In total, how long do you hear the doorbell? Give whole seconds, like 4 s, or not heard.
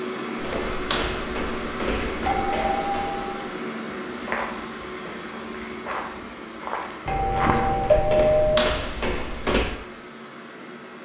3 s.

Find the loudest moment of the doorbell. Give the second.
8 s.